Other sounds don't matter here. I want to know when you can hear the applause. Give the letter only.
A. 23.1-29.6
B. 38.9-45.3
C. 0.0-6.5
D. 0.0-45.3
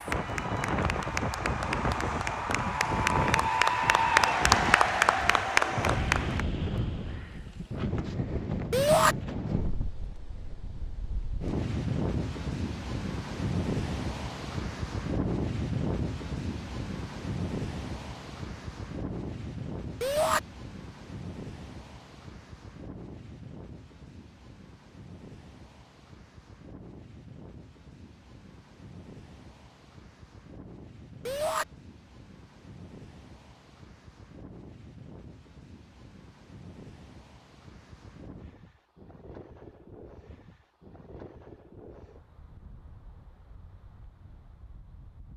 C.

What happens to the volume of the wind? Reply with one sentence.
The volume of the wind goes down.